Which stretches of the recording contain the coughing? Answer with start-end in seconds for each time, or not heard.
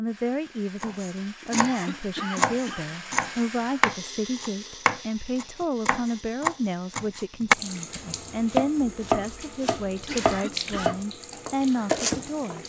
1.4-2.9, 9.9-10.9.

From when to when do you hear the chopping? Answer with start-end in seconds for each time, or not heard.
0.8-12.6.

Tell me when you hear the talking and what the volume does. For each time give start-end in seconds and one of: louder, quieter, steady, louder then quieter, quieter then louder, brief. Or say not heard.
0.0-12.6 steady.